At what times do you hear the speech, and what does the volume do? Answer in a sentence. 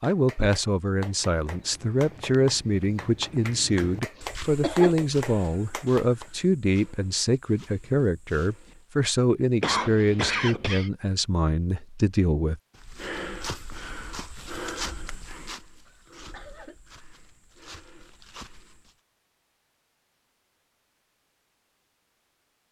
You can hear the speech from 0.0 to 12.6 s, at a steady volume.